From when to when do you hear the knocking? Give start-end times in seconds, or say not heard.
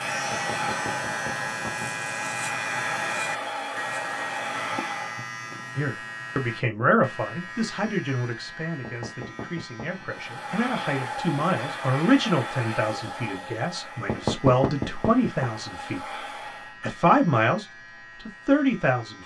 0.3-1.9, 8.8-10.1, 14.1-15.4.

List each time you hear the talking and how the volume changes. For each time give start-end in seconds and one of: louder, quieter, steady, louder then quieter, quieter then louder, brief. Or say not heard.
5.8-19.2 quieter then louder.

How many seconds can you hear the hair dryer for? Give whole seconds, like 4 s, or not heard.
12 s.